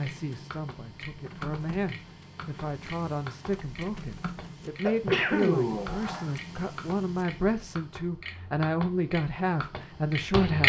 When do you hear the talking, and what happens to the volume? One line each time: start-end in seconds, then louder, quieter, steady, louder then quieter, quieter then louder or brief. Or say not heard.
0.0-10.6 louder.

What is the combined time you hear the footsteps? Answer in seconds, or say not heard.
not heard.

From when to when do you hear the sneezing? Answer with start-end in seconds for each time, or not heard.
4.8-6.3.